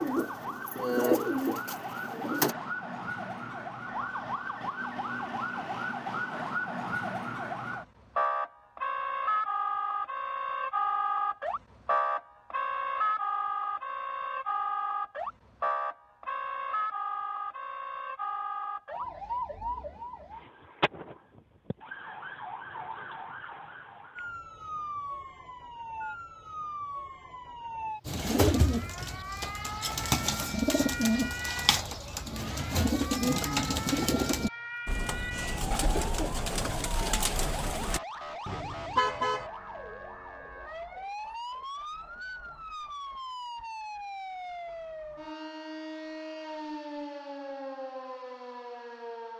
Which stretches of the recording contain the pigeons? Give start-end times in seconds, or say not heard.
0.0-2.5, 28.1-38.0.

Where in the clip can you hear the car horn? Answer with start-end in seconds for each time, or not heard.
38.5-39.5.